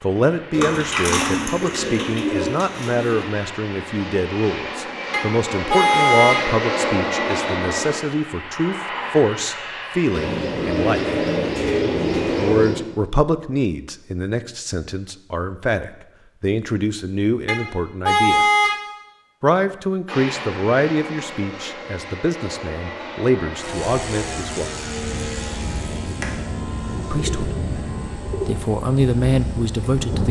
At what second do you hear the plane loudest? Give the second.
7 s.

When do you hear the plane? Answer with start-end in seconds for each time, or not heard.
0.0-12.6, 20.1-30.2.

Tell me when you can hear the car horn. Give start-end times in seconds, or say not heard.
5.1-6.5, 17.4-18.8.